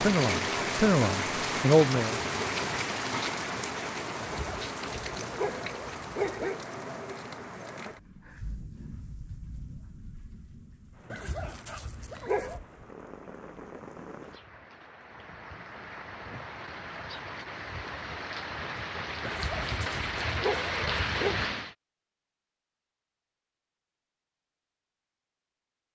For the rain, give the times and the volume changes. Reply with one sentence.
You can hear the rain from 0.0 to 21.8 s, getting quieter then louder.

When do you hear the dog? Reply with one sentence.
You can hear the dog from 4.2 to 6.6 s, from 11.1 to 12.6 s and from 19.2 to 21.4 s.